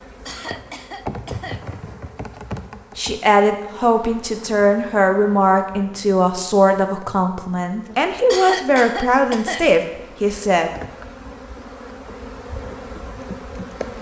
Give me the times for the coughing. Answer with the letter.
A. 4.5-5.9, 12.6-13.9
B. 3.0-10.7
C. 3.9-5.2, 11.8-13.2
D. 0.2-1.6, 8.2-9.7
D.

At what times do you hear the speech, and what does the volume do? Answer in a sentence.
The speech can be heard from 3.0 to 10.7 s, at a steady volume.